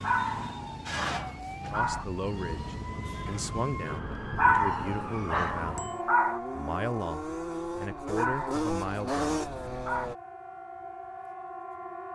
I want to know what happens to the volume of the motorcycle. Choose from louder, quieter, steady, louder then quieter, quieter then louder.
louder.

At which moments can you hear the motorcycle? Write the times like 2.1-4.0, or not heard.
2.2-10.2.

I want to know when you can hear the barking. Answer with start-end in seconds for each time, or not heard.
0.0-2.0, 4.3-6.4, 8.2-10.1.